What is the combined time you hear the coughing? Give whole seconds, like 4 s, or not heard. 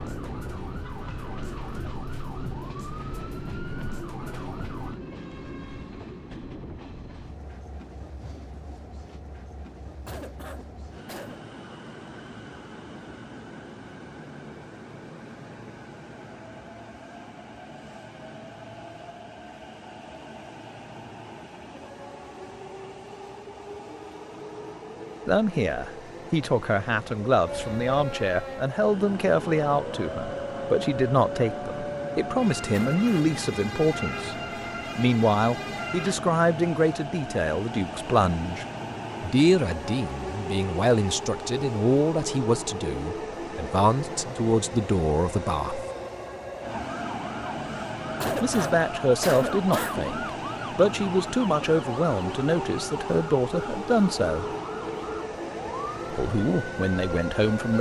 4 s.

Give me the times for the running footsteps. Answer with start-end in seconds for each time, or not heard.
not heard.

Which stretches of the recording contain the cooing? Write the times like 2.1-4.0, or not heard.
not heard.